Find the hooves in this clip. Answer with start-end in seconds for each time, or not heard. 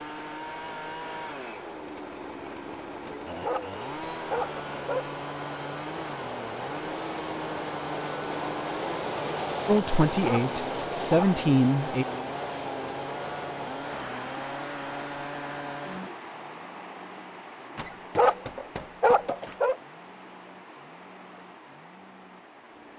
not heard.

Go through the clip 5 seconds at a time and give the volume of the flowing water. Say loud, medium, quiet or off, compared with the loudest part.
medium, loud, loud, medium, quiet.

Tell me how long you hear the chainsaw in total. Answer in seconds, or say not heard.
23 s.